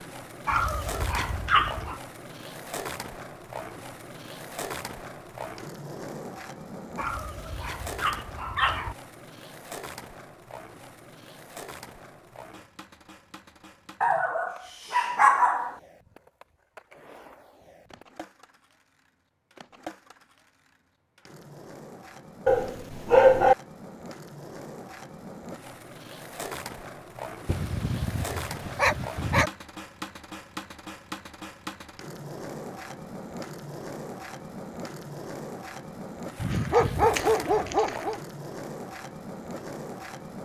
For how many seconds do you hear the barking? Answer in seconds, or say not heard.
10 s.